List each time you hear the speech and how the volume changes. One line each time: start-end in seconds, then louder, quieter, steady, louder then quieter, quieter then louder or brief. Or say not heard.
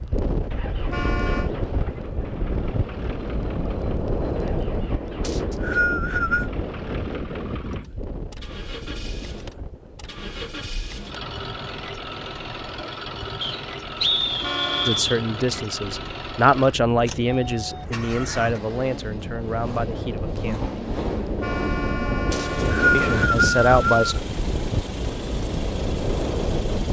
14.8-20.7 louder then quieter
22.9-24.1 brief.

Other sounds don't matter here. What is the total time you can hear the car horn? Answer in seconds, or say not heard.
3 s.